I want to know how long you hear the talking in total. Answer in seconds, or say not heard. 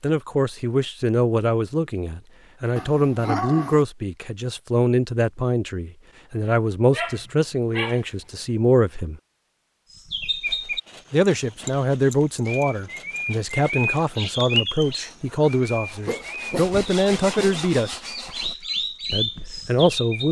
17 s.